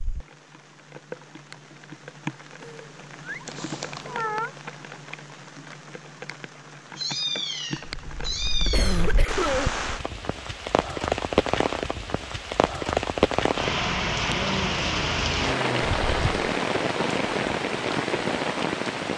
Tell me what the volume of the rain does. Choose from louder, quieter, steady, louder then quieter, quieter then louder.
louder.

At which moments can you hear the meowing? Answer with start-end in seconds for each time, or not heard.
2.6-4.5, 7.0-9.1, 15.8-16.5.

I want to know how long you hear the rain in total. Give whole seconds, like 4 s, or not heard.
19 s.